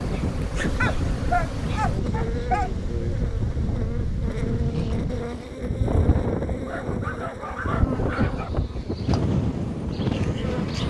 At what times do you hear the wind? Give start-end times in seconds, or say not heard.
0.0-10.8.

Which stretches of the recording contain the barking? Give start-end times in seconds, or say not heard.
0.8-2.7, 6.7-8.5.